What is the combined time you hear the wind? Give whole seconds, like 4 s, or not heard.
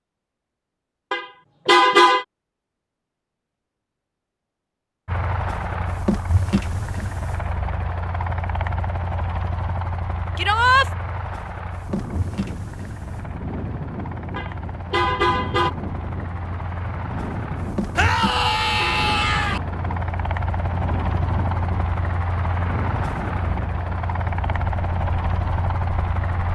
15 s.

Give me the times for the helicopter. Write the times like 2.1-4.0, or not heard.
5.0-26.5.